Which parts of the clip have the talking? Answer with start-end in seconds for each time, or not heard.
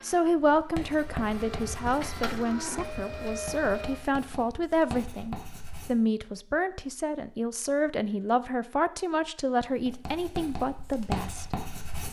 0.0-11.4.